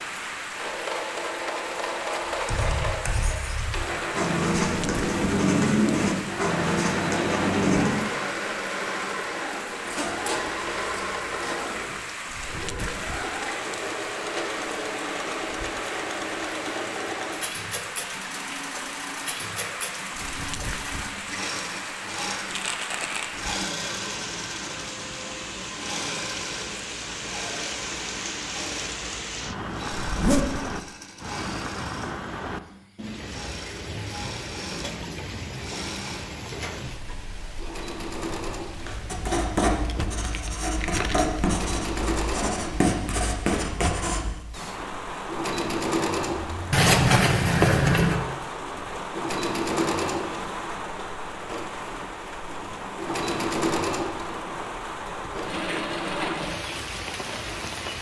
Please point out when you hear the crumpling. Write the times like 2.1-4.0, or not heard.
22.5-23.3, 39.8-41.4.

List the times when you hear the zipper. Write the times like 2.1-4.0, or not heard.
9.8-12.0, 30.1-30.8, 46.7-48.1.